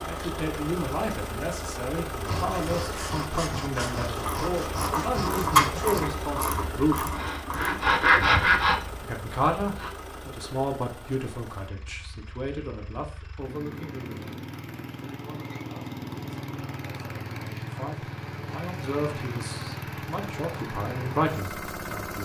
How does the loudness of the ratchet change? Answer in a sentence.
The volume of the ratchet goes up, then down.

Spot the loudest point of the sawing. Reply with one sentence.
The loudest moment of the sawing is at 8 seconds.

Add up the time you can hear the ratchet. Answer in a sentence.
You can hear the ratchet for 5 seconds altogether.